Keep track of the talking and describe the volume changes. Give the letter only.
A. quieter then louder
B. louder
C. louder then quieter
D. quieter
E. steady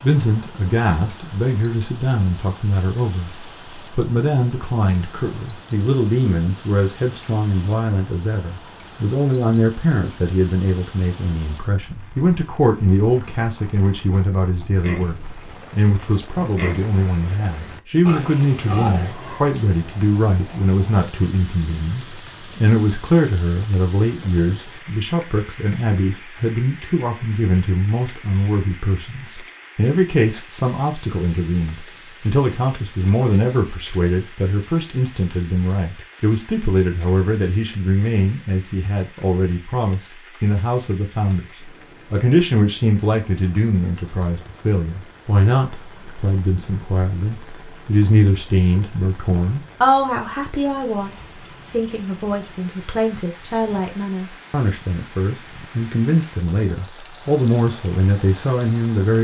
E.